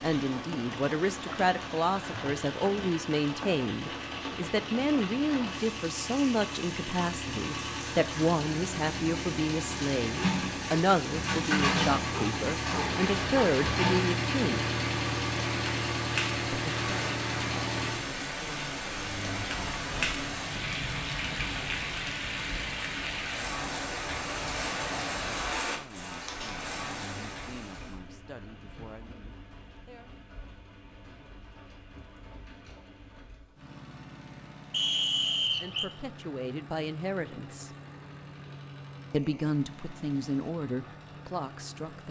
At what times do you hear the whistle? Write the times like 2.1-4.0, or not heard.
34.7-35.9.